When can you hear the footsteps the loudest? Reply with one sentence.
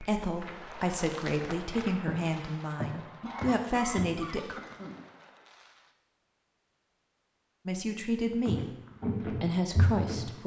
The volume of the footsteps peaks at 9 seconds.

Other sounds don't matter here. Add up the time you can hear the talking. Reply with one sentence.
The talking can be heard for 7 seconds in total.